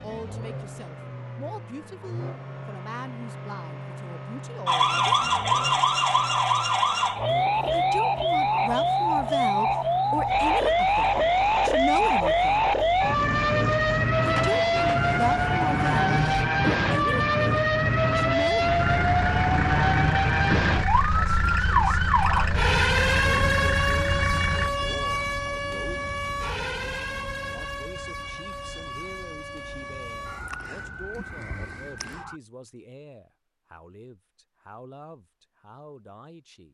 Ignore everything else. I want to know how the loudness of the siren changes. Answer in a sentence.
The loudness of the siren goes down.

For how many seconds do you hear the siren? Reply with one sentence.
The siren can be heard for 28 seconds in total.